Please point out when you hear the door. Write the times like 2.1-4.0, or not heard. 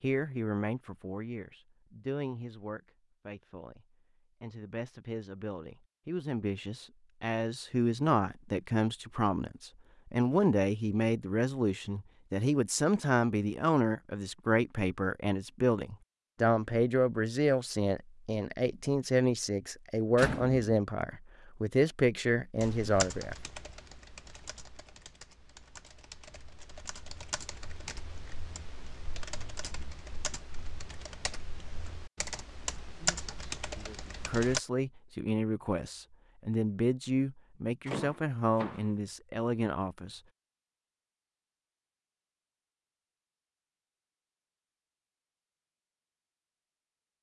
20.1-20.6, 37.9-38.9.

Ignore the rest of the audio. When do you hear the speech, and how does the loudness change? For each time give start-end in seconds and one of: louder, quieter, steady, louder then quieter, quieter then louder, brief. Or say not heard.
0.0-23.4 louder
33.0-40.2 steady.